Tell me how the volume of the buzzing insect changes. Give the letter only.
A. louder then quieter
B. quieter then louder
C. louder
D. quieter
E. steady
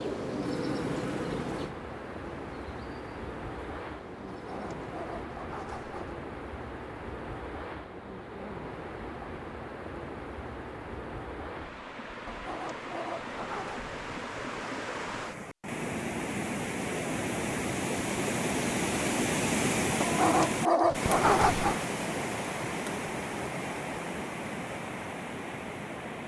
D.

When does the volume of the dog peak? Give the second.
21 s.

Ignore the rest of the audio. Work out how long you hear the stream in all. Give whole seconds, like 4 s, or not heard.
26 s.